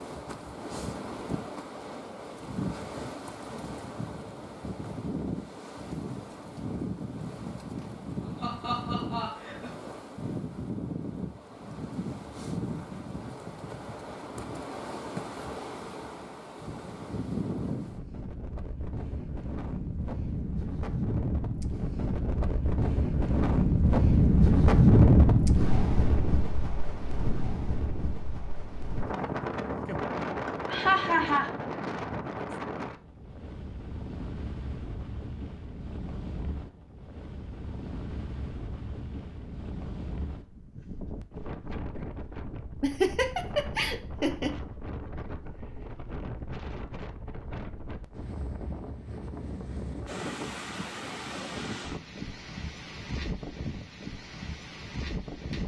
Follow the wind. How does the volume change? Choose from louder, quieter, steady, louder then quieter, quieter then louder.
louder then quieter.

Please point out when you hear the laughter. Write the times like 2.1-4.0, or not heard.
7.8-9.8, 30.4-31.5, 42.8-44.5.